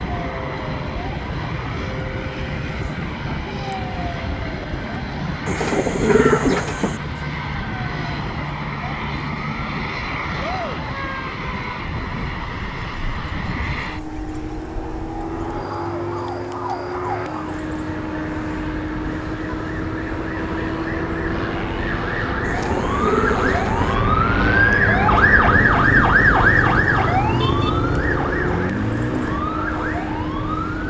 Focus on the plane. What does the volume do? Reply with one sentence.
The loudness of the plane stays about the same.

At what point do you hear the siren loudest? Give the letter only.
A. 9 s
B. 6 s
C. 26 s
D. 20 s
C.